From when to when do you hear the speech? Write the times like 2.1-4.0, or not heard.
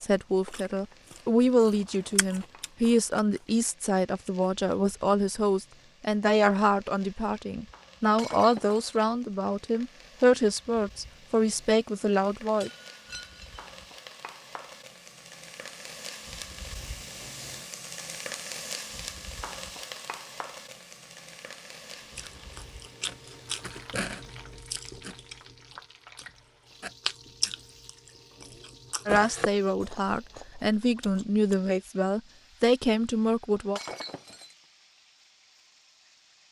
0.0-12.7, 29.1-33.8.